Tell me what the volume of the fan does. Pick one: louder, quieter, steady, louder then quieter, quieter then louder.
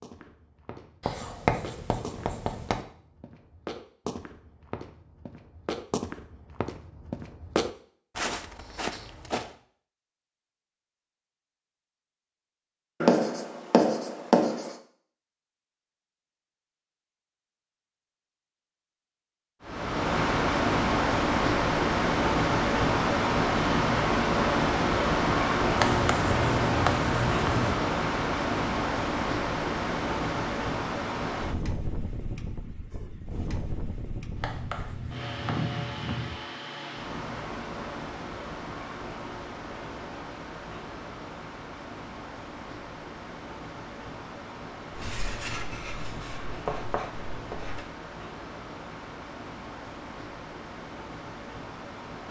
quieter.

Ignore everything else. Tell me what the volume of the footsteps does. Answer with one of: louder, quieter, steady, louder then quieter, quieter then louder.
louder.